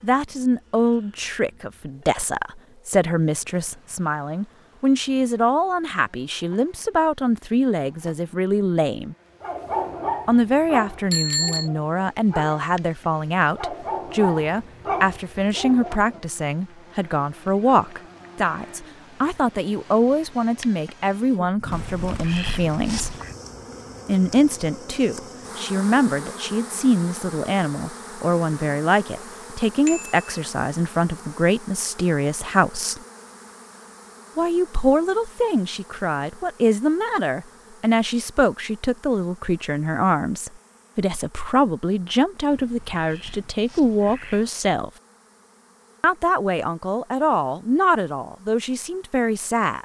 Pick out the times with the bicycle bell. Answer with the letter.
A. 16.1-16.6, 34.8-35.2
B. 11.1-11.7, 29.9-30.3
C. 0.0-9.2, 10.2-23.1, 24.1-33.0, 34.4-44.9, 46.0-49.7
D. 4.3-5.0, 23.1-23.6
B.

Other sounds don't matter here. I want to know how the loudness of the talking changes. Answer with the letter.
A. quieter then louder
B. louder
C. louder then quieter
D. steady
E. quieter
D.